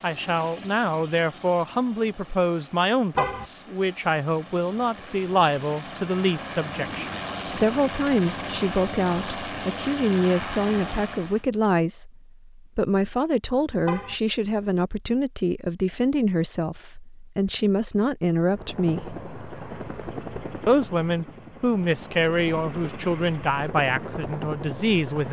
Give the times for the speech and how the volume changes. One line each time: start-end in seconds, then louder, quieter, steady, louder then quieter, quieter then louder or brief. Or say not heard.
0.0-19.1 steady
20.6-25.2 quieter.